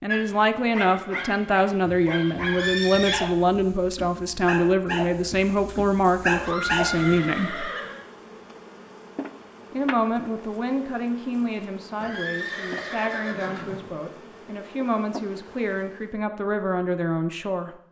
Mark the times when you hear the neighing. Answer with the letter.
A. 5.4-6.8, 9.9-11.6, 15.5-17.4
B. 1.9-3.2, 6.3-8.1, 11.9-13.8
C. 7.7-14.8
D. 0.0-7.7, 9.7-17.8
B.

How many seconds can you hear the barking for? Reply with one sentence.
The barking can be heard for 7 seconds in total.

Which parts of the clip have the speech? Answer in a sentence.
The speech can be heard from 0.0 to 7.7 s and from 9.7 to 17.8 s.